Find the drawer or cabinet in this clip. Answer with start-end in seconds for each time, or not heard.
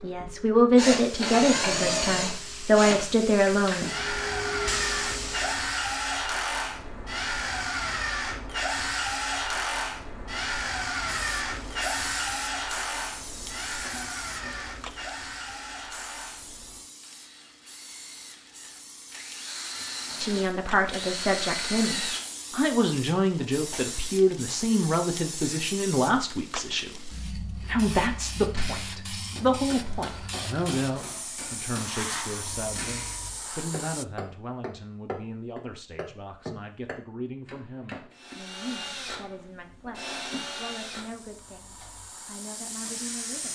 13.8-14.9, 39.9-40.7.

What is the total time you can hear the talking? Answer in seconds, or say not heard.
27 s.